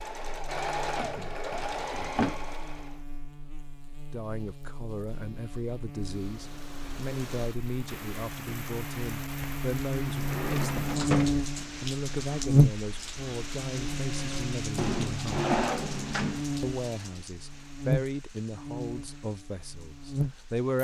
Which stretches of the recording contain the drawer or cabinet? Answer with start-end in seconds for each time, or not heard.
0.9-2.4, 10.1-11.4, 14.8-16.4.